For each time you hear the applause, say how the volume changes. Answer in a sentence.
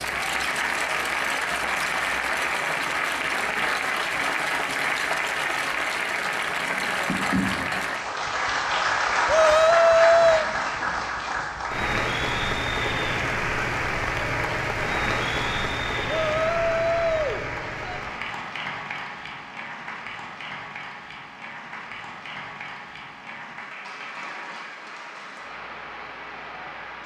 You can hear the applause from 0.0 to 27.0 s, getting quieter.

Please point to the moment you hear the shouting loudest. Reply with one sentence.
The volume of the shouting peaks at 10 seconds.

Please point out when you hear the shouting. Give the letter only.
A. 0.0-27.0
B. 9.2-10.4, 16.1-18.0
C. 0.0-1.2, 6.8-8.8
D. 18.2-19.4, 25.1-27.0
B.